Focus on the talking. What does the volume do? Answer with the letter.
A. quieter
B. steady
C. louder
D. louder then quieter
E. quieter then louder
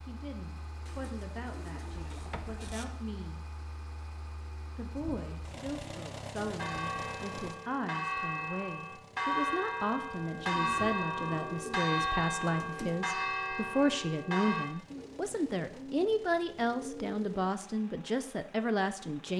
C.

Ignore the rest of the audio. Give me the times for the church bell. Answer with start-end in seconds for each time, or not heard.
6.5-14.7.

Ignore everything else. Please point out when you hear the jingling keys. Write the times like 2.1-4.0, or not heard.
1.9-2.8.